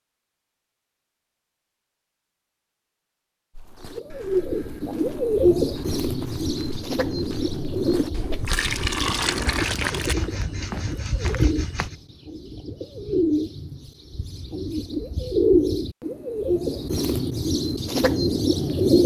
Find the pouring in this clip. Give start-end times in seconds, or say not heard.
8.1-10.2.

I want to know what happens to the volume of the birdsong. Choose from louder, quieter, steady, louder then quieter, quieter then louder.
quieter then louder.